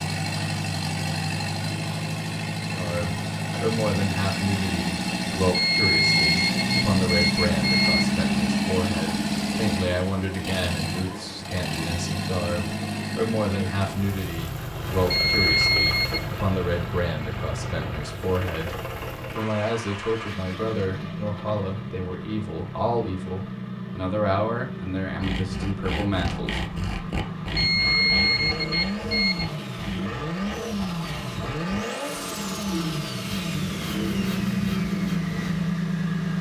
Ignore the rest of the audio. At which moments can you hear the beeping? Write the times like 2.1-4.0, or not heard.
5.5-8.1, 15.1-16.2, 27.6-29.5.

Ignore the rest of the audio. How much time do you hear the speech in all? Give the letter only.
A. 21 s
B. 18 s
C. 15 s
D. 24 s
D.